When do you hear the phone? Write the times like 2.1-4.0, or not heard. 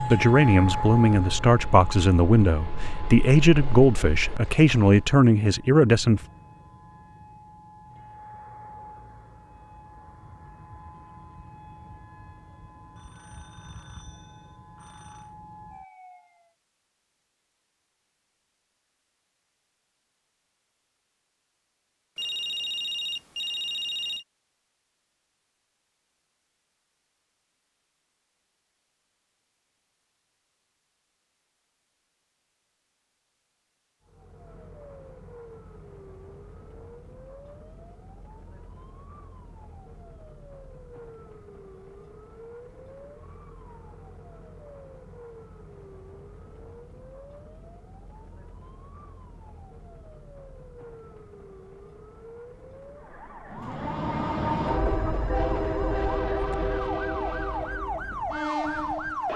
12.9-15.3, 22.1-24.2, 54.6-56.2.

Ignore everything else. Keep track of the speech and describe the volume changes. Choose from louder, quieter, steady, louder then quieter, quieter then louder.
steady.